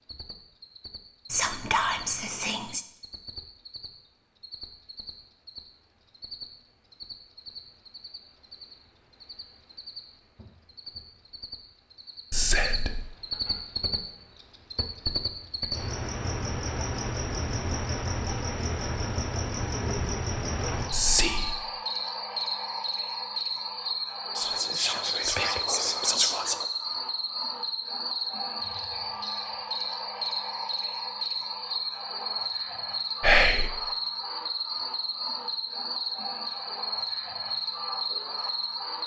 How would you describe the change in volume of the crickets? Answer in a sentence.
The loudness of the crickets goes up.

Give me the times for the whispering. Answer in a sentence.
The whispering can be heard from 1.3 to 2.8 s, from 12.3 to 13.1 s, from 20.9 to 21.6 s, from 24.4 to 26.6 s and from 33.2 to 33.7 s.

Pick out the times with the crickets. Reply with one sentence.
You can hear the crickets from 0.0 to 39.0 s.